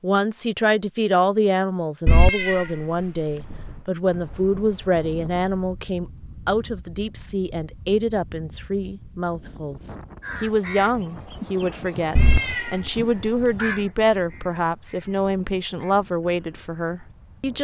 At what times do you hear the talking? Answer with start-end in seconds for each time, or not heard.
0.0-17.5.